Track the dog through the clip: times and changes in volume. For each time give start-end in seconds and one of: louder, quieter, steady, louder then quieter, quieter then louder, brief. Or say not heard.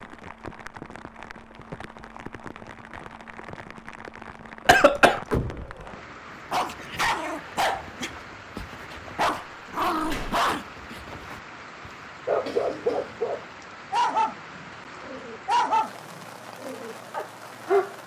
6.5-17.9 steady.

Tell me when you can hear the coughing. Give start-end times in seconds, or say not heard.
4.7-5.2, 12.4-13.2.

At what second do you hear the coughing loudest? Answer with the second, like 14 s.
5 s.